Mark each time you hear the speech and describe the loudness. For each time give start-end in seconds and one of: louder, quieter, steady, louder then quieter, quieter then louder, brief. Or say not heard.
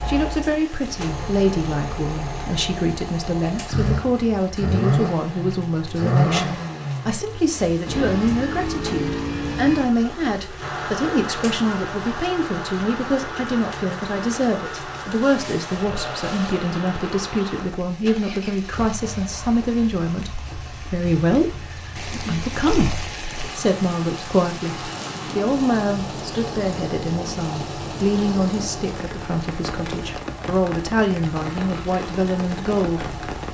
0.0-33.1 steady.